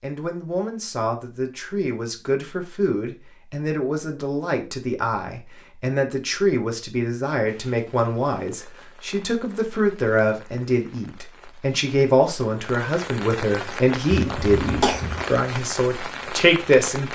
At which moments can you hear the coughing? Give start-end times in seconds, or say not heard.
14.2-15.4.